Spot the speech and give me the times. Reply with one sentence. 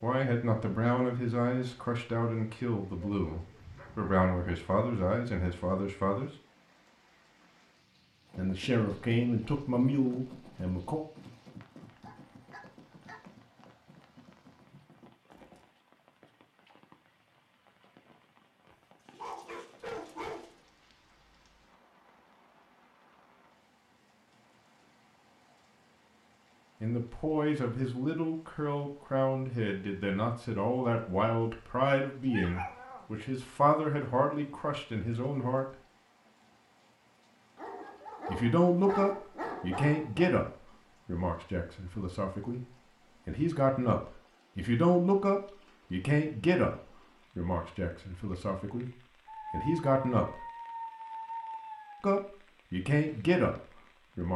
You can hear the speech from 0.0 to 6.3 s, from 8.3 to 11.1 s, from 26.8 to 35.8 s, from 38.2 to 50.5 s and from 52.0 to 54.3 s.